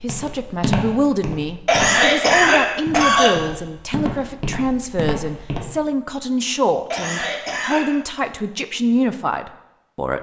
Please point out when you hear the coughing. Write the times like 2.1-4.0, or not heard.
1.6-3.4, 6.9-7.9.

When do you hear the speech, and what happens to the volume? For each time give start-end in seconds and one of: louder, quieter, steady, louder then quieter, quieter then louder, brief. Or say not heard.
0.0-10.1 steady.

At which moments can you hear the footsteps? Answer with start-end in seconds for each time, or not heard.
0.0-5.6.